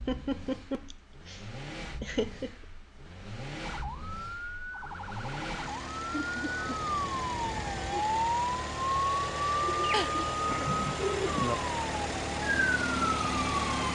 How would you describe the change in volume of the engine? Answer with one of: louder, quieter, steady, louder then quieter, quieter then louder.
louder.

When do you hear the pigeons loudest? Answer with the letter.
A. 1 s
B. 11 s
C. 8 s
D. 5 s
B.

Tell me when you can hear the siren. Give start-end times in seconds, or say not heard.
3.6-13.8.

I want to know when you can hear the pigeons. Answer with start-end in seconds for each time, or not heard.
9.7-11.6.